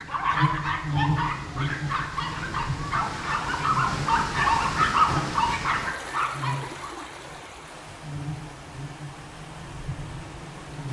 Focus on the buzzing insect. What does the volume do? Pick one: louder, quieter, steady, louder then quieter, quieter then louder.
quieter.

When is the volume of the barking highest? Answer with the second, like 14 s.
5 s.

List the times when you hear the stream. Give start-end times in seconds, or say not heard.
0.0-10.8.